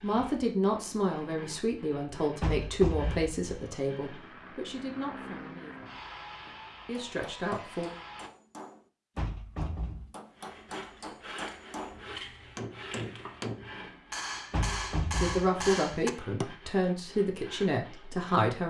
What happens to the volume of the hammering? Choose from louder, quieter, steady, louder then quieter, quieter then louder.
louder.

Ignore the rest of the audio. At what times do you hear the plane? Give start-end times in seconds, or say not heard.
4.0-8.3.